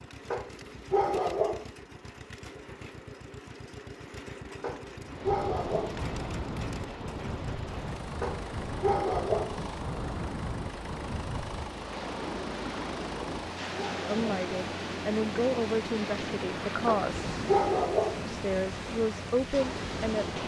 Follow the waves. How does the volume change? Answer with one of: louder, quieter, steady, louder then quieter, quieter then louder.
steady.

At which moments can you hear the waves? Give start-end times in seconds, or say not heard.
5.0-20.4.